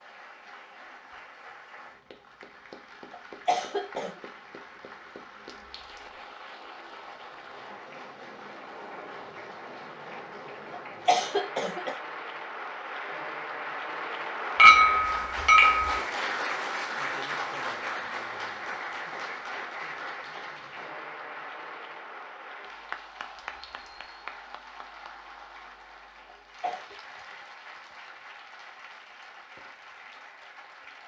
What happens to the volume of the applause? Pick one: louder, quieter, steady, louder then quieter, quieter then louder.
louder then quieter.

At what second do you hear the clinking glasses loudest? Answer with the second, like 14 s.
15 s.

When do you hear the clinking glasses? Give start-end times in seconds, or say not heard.
5.5-6.0, 14.6-16.0, 23.4-23.9.